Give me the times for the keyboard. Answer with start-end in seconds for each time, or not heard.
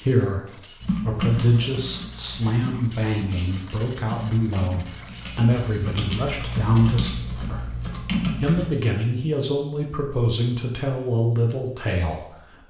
0.8-8.7.